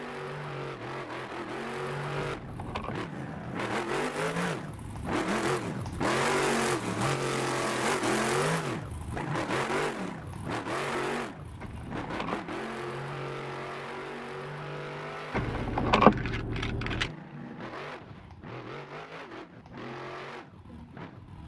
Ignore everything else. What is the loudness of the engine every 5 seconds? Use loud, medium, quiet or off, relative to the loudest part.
medium, loud, medium, quiet, quiet.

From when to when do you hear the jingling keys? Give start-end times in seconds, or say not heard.
2.1-3.0, 11.6-12.4, 15.3-17.1.